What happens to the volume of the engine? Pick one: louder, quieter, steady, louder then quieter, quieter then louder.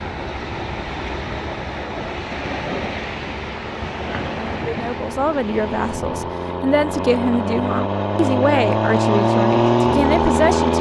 louder.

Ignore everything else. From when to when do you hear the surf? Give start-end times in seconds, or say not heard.
0.0-6.3.